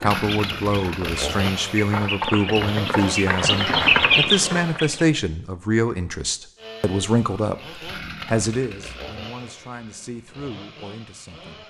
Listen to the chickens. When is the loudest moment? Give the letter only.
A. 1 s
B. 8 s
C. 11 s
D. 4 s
D.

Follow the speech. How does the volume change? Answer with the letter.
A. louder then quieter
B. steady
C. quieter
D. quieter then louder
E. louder
C.